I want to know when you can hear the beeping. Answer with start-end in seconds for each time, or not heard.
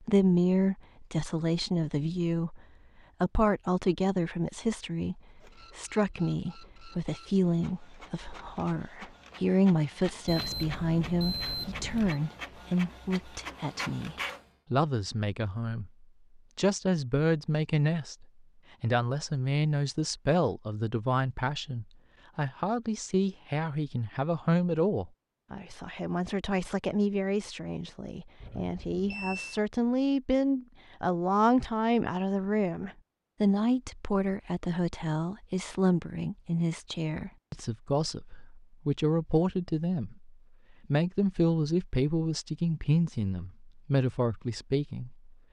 10.2-12.2, 28.4-29.6.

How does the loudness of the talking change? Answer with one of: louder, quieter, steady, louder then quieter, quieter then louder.
steady.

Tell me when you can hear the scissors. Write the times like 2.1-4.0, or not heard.
not heard.